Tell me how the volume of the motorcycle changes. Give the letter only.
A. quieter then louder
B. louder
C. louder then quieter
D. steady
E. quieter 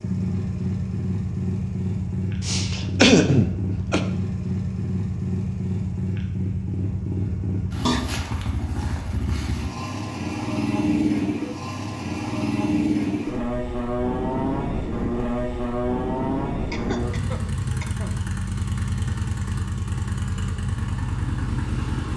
D.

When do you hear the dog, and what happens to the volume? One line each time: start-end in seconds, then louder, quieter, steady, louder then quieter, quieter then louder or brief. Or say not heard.
not heard.